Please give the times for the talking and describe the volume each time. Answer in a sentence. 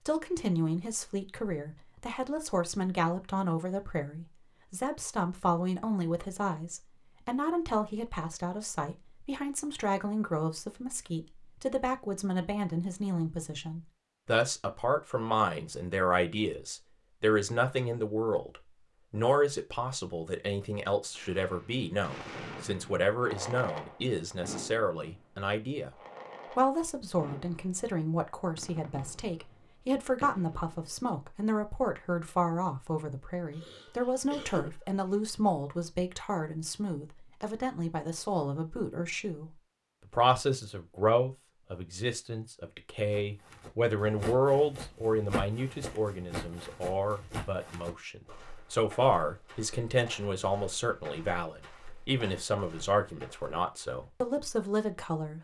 The talking can be heard from 0.1 to 55.3 s, at a steady volume.